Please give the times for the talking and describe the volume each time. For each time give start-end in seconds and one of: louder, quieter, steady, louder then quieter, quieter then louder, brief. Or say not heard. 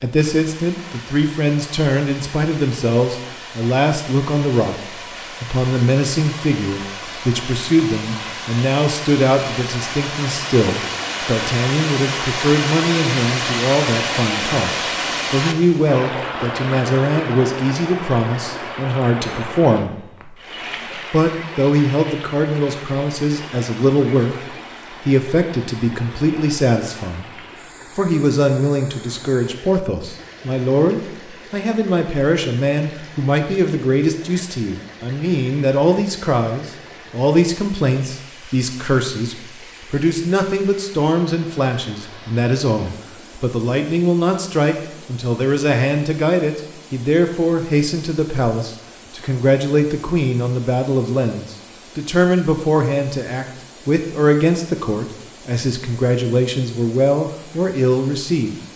0.0-27.3 steady
27.9-58.5 steady.